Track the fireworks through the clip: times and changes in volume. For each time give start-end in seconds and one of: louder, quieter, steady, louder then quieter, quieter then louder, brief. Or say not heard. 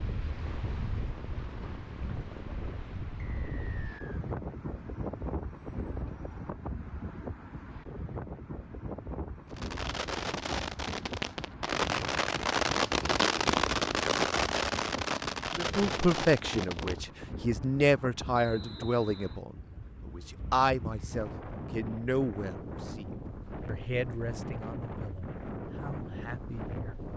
9.5-17.1 louder then quieter.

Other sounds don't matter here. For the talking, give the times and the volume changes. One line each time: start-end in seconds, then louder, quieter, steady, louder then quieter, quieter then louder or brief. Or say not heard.
15.6-27.1 quieter.